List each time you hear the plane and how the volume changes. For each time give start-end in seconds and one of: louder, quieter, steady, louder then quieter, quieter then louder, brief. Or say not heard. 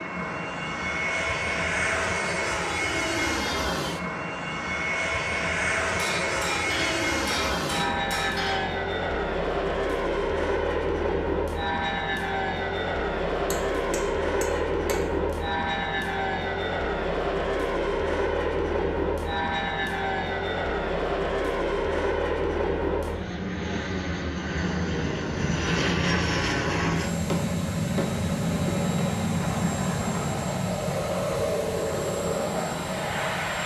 0.0-33.6 steady.